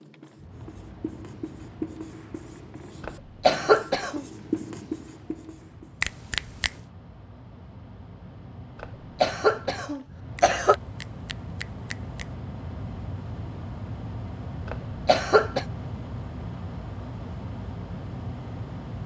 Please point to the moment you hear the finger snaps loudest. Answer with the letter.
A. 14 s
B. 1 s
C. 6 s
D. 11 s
C.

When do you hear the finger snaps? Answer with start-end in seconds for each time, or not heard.
6.0-6.8, 10.3-12.3.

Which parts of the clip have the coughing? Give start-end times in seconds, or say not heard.
3.0-4.2, 8.8-10.8, 14.7-15.7.